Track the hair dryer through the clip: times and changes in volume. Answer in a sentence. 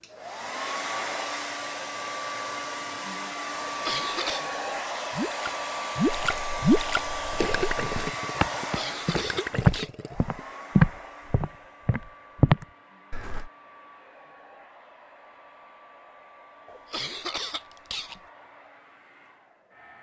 The hair dryer can be heard from 0.0 to 19.9 s, getting quieter.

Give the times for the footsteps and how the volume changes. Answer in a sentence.
The footsteps can be heard from 6.0 to 13.5 s, getting louder.